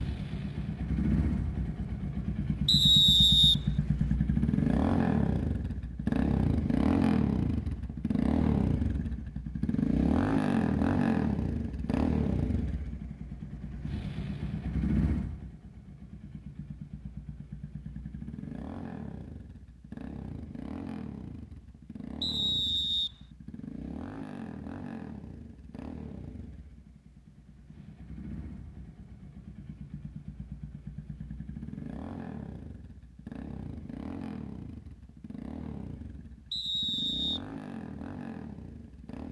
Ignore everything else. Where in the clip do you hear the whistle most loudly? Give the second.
3 s.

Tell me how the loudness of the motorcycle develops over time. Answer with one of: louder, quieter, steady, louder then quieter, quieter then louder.
quieter.